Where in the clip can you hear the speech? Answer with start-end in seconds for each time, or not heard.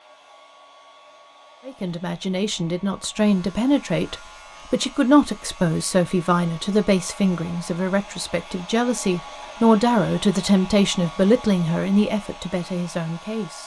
1.6-13.6.